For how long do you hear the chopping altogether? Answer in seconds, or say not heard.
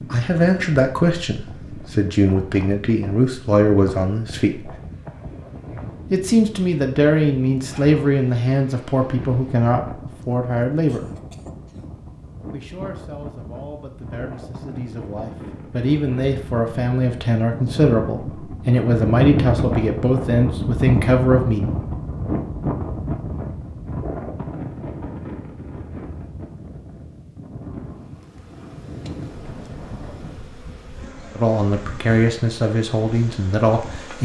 not heard.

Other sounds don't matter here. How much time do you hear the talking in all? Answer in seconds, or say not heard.
22 s.